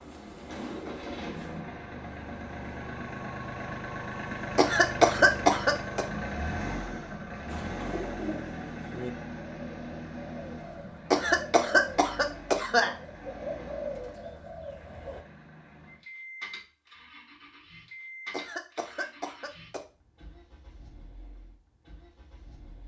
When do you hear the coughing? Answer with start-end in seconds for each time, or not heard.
4.5-6.0, 11.1-12.9, 18.3-19.8.